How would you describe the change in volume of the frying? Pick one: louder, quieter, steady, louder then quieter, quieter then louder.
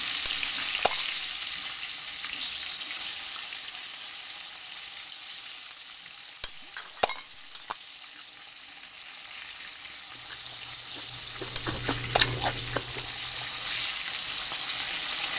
quieter then louder.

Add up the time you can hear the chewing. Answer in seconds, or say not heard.
4 s.